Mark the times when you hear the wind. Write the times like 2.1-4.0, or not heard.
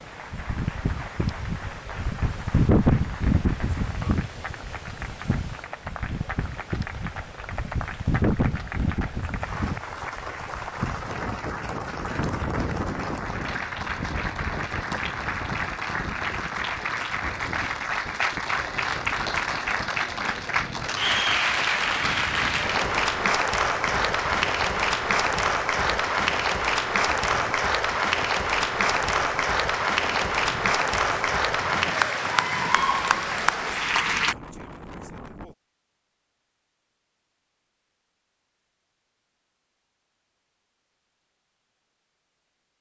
0.0-35.5.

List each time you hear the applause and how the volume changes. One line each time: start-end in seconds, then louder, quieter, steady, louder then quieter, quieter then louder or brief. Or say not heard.
0.0-34.4 louder.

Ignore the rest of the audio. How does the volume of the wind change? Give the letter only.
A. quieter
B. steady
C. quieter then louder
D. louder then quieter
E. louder
A.